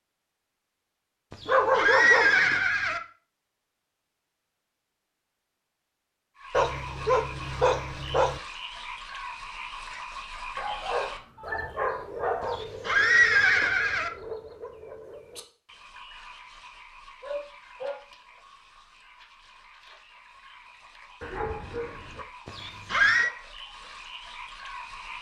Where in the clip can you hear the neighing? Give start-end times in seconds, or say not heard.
1.3-3.0, 12.4-14.1, 22.4-23.3.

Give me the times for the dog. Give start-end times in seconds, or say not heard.
1.4-2.6, 6.5-8.4, 10.6-12.6, 17.2-18.4, 21.2-22.2.